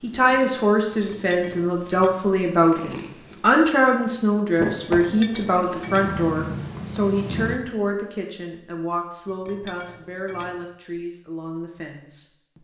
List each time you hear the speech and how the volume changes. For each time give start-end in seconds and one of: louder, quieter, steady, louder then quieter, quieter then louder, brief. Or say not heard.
0.0-12.6 quieter.